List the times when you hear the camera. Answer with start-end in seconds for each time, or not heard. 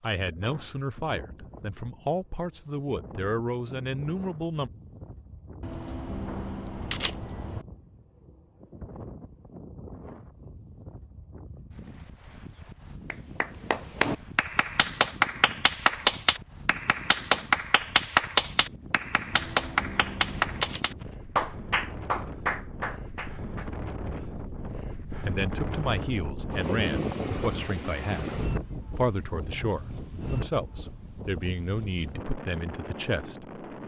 5.6-7.7, 19.3-20.9.